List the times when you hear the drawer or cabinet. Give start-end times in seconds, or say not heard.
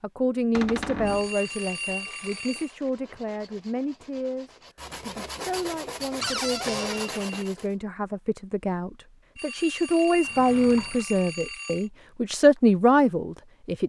0.5-1.3, 6.2-7.2, 10.2-11.1.